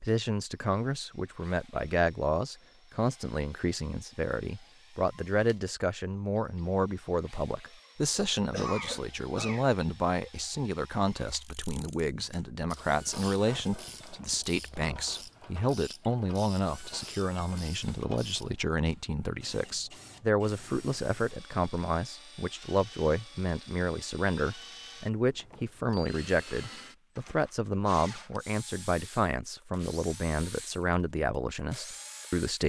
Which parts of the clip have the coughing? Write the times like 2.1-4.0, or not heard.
8.3-9.7.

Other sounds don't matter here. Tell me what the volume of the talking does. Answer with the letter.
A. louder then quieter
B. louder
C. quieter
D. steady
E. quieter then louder
D.